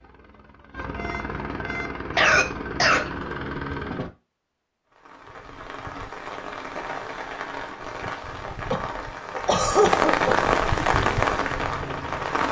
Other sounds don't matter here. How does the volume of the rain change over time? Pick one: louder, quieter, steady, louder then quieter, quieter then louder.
louder.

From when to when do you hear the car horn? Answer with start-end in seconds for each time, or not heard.
0.9-2.0.